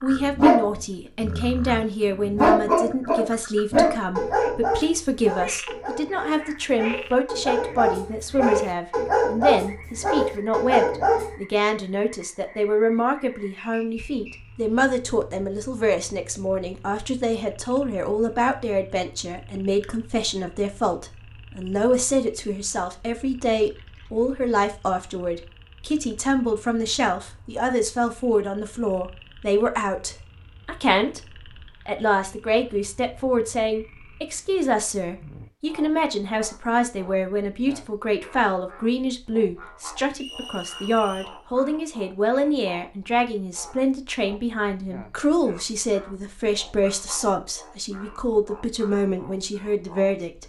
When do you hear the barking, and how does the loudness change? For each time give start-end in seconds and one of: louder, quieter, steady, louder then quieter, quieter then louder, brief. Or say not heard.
0.1-11.3 quieter then louder.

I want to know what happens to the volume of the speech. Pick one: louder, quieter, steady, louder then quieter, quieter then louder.
steady.